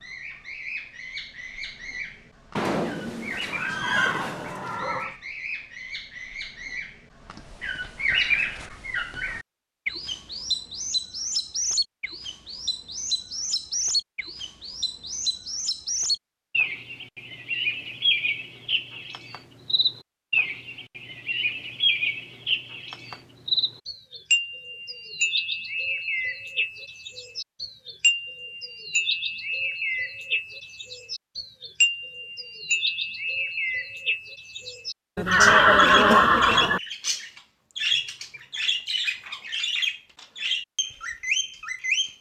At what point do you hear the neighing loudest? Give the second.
36 s.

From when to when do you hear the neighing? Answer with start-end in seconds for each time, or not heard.
2.5-5.2, 35.1-36.8.